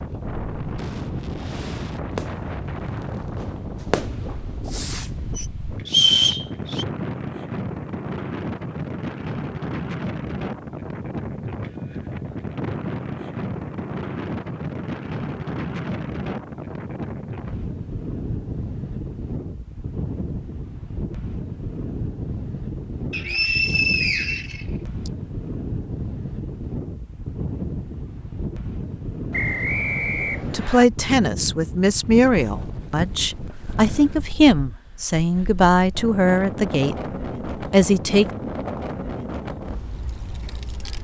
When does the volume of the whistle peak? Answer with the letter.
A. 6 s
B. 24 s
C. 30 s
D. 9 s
A.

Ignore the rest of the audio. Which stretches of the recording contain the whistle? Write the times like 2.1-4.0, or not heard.
5.8-6.8, 23.1-25.1, 29.3-30.9.